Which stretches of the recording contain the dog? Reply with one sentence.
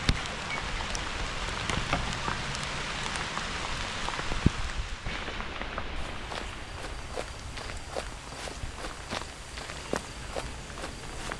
You can't hear the dog here.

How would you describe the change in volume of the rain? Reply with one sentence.
The loudness of the rain goes down.